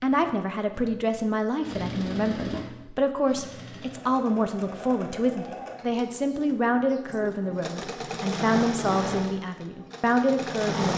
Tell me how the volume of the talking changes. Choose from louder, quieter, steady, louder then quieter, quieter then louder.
steady.